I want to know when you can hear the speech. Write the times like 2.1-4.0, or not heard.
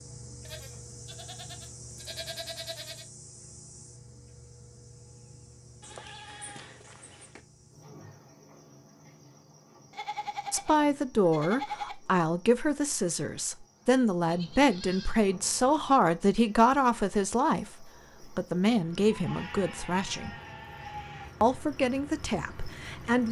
10.5-20.3, 21.4-23.2.